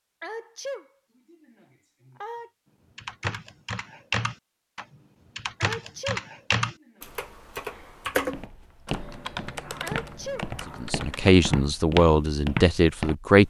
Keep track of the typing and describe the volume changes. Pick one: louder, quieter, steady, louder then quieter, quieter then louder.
quieter.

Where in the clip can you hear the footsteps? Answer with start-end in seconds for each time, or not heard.
8.3-13.4.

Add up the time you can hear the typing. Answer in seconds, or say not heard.
9 s.